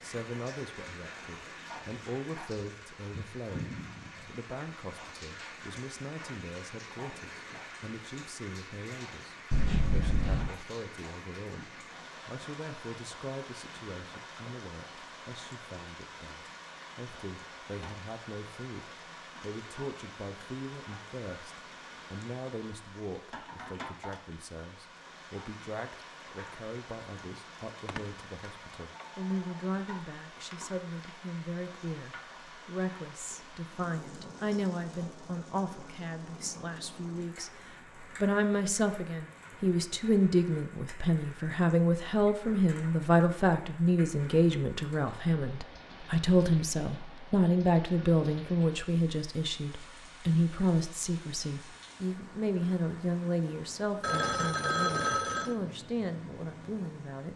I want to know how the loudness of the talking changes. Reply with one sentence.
The loudness of the talking goes up.